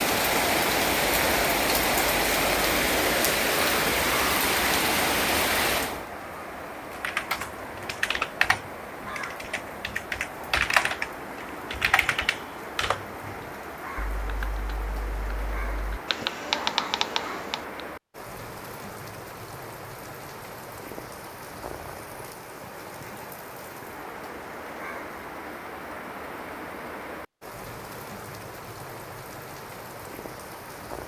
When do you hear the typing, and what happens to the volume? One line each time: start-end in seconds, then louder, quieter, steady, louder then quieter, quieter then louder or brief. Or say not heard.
6.9-17.8 quieter then louder.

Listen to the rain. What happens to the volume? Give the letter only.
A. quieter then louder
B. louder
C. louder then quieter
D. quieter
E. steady
D.